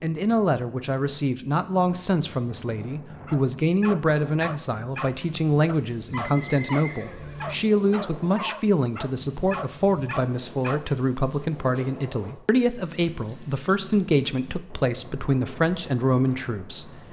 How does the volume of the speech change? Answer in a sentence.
The loudness of the speech stays about the same.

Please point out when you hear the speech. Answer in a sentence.
The speech can be heard from 0.0 to 17.0 s.